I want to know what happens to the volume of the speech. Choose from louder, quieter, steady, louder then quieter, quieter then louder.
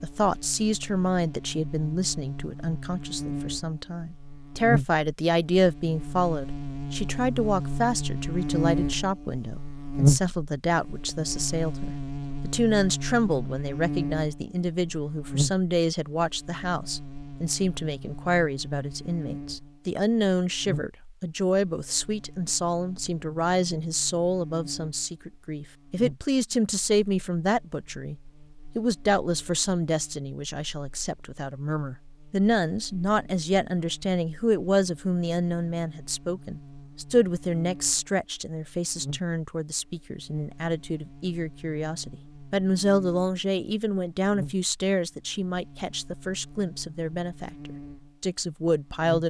steady.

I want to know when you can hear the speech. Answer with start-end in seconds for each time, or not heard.
0.0-28.1, 28.8-49.2.